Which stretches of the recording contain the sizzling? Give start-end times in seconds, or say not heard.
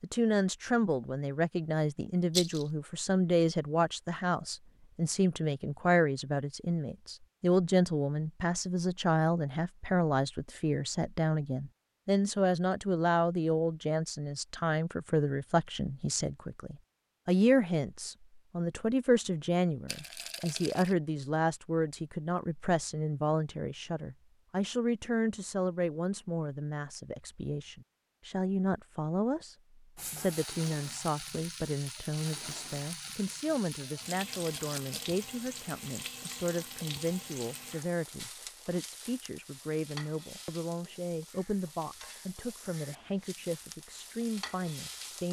29.9-45.2.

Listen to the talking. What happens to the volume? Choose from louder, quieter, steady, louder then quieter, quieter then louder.
quieter.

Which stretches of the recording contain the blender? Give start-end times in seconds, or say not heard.
not heard.